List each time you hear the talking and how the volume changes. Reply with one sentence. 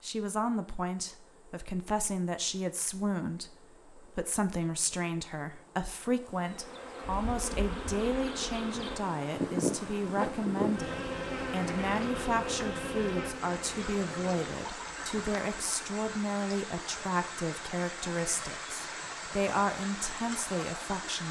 The talking can be heard from 0.0 to 21.2 s, at a steady volume.